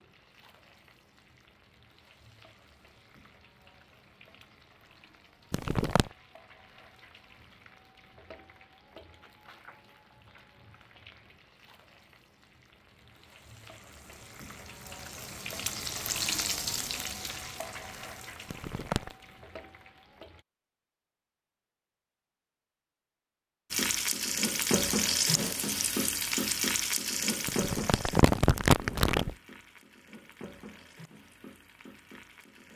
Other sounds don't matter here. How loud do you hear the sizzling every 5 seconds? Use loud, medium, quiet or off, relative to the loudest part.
quiet, quiet, quiet, medium, loud, loud, quiet.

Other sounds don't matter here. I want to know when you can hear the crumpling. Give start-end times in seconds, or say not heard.
5.5-6.1, 18.5-19.1, 27.4-29.4.